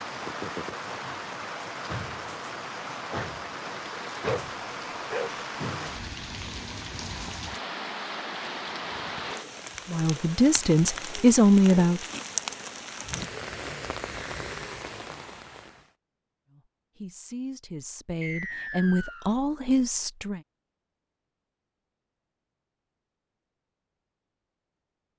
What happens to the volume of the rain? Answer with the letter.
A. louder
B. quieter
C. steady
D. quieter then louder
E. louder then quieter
C.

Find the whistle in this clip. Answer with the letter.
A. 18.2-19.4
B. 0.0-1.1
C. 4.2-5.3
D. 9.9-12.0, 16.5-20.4
A.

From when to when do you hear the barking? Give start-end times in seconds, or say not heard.
4.2-5.3.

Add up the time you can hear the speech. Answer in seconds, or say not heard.
6 s.